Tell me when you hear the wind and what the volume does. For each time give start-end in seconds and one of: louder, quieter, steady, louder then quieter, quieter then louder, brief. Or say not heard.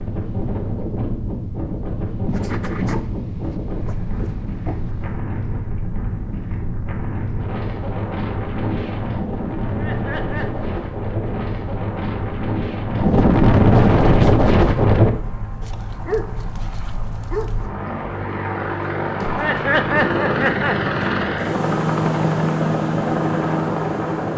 0.0-15.1 louder.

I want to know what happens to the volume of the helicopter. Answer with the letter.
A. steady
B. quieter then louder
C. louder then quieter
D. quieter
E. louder
E.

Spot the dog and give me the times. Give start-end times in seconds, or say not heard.
2.2-5.2, 15.6-17.7.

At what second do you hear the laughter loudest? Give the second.
20 s.